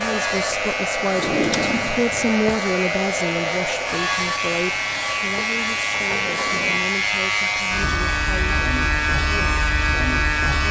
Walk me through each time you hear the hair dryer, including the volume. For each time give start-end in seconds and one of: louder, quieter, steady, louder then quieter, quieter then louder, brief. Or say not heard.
0.0-10.6 quieter.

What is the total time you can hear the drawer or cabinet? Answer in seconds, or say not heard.
3 s.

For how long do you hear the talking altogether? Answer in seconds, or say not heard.
9 s.